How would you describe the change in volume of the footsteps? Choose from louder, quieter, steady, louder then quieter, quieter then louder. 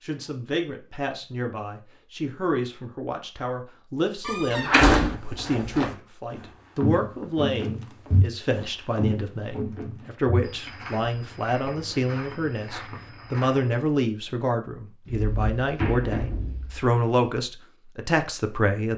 quieter.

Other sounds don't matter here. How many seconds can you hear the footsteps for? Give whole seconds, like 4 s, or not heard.
9 s.